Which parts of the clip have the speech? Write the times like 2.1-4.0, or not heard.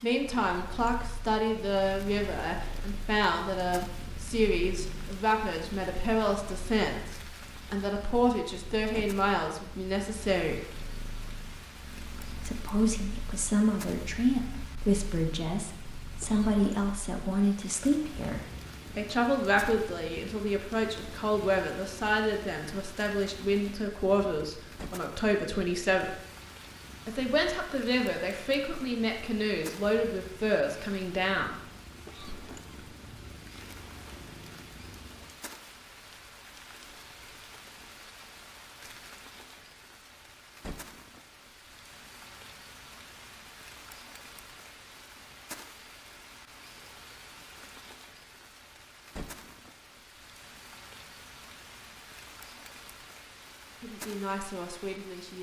0.0-10.8, 12.4-26.1, 27.1-31.6, 53.8-55.3.